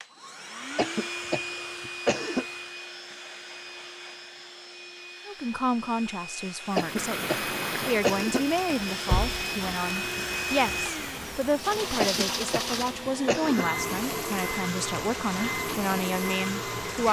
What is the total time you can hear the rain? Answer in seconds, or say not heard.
10 s.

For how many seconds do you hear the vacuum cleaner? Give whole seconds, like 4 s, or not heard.
17 s.